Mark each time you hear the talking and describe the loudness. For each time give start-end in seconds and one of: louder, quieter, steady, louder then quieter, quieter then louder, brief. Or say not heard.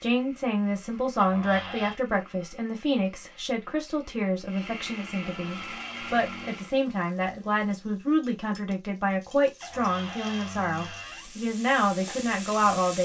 0.0-12.9 steady.